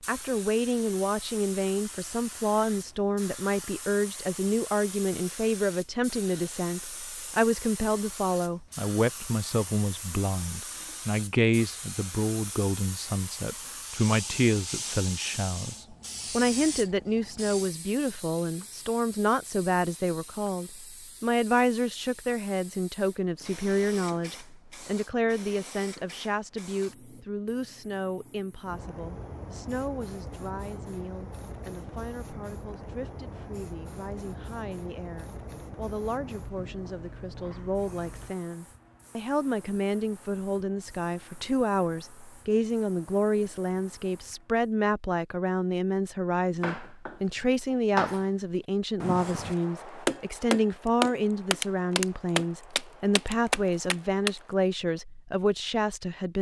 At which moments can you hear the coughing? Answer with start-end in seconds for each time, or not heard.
not heard.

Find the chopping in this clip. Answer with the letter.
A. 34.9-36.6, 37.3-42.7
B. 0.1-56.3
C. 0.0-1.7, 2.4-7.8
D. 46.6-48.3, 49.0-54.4
D.